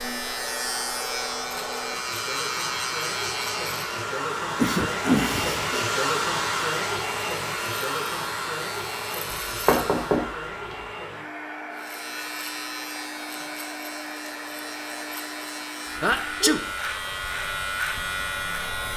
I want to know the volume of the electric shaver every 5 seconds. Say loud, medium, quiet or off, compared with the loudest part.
loud, medium, medium, loud.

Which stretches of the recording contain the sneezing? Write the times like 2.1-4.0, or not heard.
4.5-5.8, 16.0-16.6.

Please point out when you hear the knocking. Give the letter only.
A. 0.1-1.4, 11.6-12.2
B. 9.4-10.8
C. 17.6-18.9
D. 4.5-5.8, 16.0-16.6
B.